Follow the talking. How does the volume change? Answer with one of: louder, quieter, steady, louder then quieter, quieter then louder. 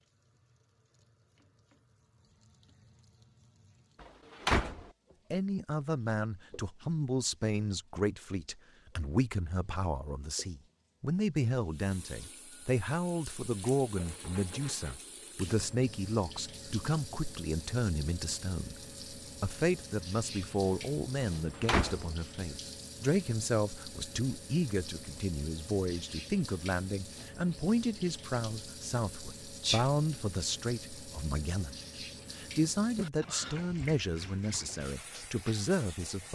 steady.